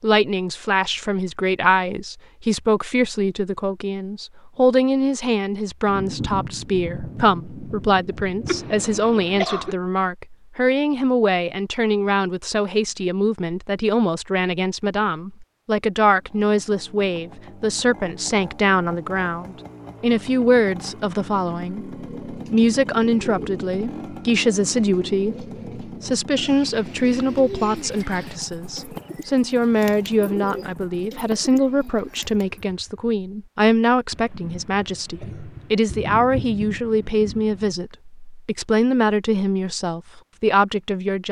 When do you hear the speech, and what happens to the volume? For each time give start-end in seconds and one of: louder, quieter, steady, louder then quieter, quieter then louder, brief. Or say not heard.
0.0-41.2 steady.